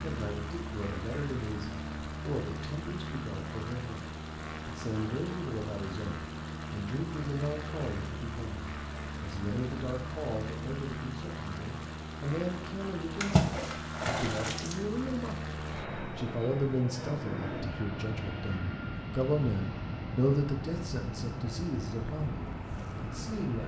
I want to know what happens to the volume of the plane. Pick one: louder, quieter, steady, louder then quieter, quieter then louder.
steady.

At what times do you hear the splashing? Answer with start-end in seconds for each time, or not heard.
13.2-14.8.